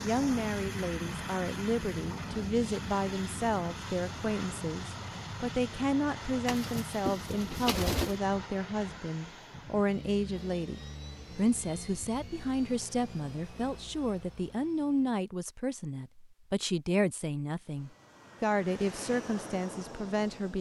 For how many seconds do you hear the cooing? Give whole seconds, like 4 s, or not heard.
2 s.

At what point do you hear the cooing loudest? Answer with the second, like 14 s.
8 s.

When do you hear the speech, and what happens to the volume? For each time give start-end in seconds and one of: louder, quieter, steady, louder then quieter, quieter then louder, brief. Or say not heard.
0.0-20.5 steady.